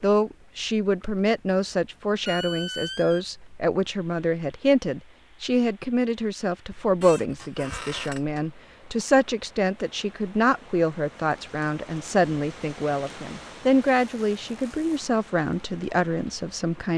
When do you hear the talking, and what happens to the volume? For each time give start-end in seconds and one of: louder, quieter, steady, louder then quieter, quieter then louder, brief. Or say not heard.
0.0-16.9 steady.